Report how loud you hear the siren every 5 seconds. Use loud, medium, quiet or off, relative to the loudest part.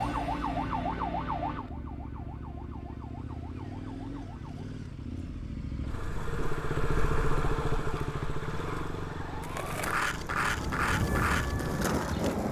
loud, medium, loud.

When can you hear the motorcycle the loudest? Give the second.
7 s.